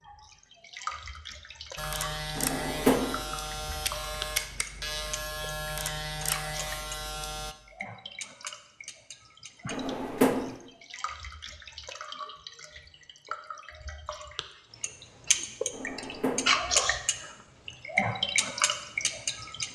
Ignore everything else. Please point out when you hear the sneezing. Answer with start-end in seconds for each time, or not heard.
not heard.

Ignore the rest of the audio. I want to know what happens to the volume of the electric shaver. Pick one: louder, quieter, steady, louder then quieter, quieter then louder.
steady.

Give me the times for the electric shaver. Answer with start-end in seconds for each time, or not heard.
1.8-7.5.